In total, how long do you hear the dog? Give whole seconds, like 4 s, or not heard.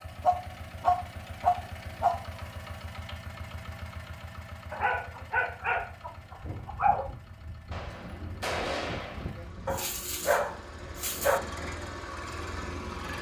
6 s.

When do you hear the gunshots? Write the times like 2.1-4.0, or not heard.
7.7-9.3.